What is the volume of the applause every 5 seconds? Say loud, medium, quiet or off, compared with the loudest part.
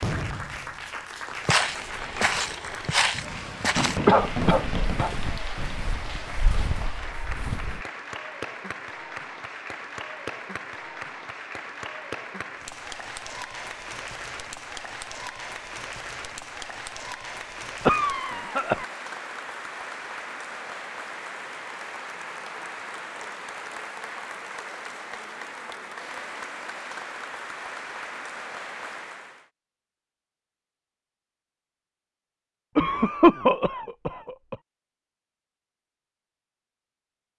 loud, loud, loud, loud, loud, loud, off, off.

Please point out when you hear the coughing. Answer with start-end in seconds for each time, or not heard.
4.0-5.2, 17.8-18.9, 32.8-34.5.